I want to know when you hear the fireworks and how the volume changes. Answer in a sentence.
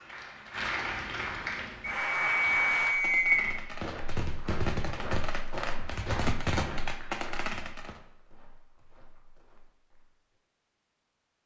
You can hear the fireworks from 2.4 to 8.0 s, getting louder.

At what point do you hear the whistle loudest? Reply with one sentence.
The loudest moment of the whistle is at 3 seconds.